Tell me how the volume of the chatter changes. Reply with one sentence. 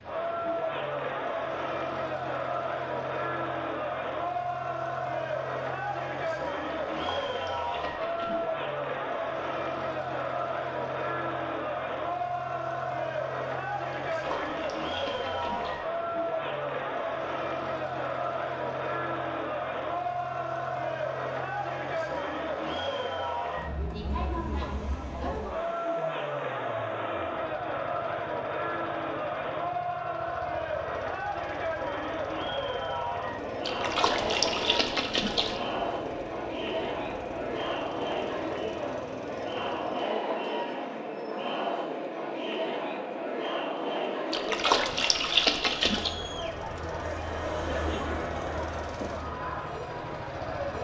The volume of the chatter stays about the same.